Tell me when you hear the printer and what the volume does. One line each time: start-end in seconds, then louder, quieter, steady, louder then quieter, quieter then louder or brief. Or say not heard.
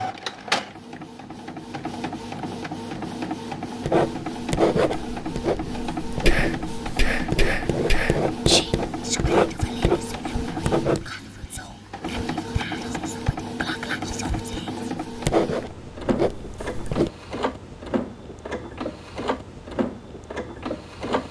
0.0-21.2 steady.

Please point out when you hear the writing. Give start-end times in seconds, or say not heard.
3.9-11.1, 15.1-17.1.